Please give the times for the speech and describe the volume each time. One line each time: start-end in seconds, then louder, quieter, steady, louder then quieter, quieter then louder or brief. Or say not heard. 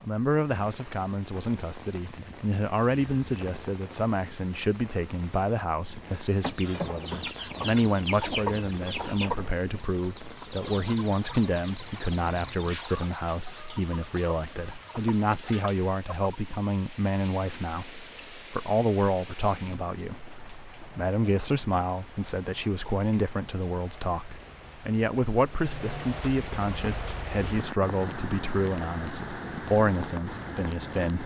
0.0-31.2 steady.